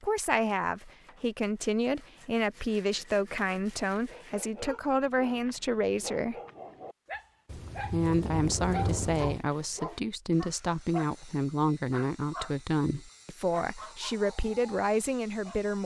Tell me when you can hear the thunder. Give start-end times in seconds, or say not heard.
7.5-9.4.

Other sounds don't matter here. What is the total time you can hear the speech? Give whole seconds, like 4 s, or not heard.
14 s.